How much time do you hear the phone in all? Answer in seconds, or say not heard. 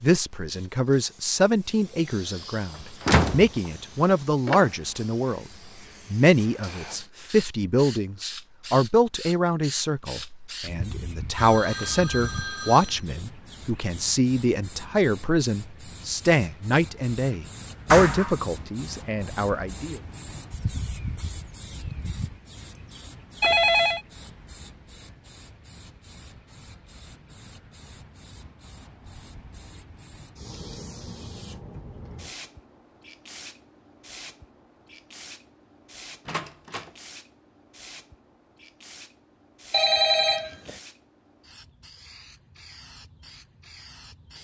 3 s.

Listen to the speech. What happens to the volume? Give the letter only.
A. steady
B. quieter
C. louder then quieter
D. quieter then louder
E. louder
A.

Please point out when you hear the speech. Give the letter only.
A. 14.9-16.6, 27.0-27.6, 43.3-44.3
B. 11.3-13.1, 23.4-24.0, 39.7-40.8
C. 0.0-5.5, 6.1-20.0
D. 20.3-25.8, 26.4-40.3
C.